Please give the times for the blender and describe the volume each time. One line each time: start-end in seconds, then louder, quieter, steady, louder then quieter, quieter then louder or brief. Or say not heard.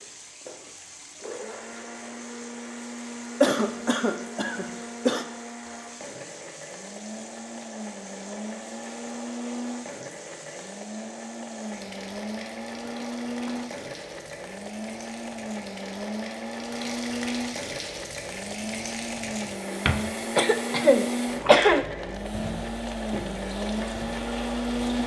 0.0-25.0 louder.